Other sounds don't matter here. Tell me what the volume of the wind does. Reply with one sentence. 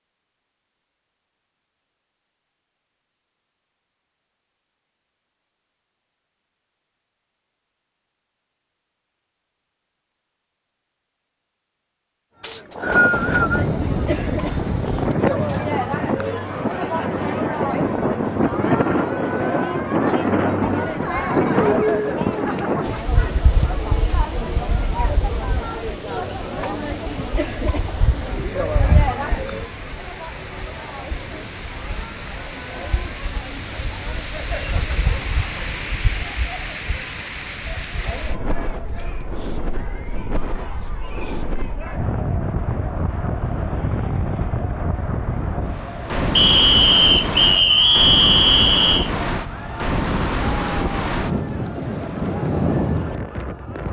The loudness of the wind goes down, then up.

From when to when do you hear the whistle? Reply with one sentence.
The whistle can be heard from 12.4 to 13.7 s and from 46.4 to 49.1 s.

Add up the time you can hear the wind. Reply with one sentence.
The wind can be heard for 41 seconds in total.